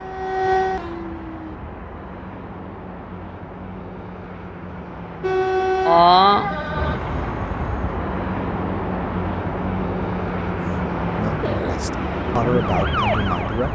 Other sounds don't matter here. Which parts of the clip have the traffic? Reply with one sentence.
You can hear the traffic from 0.0 to 13.7 s.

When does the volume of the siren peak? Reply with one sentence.
The volume of the siren peaks at 6 seconds.